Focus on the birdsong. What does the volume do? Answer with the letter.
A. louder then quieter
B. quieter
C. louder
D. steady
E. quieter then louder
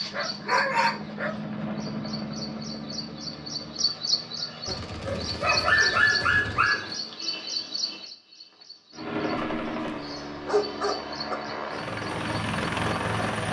A.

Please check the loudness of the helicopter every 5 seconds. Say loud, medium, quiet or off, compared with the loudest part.
medium, loud, loud.